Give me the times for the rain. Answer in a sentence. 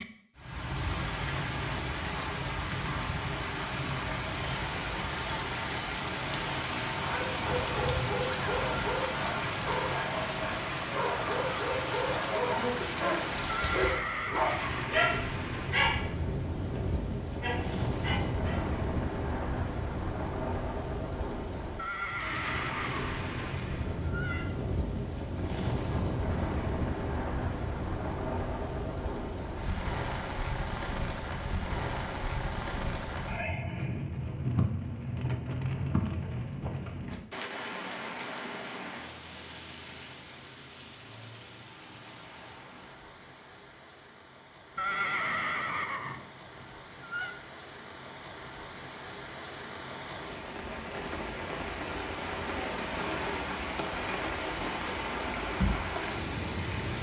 You can hear the rain from 0.0 to 56.9 s.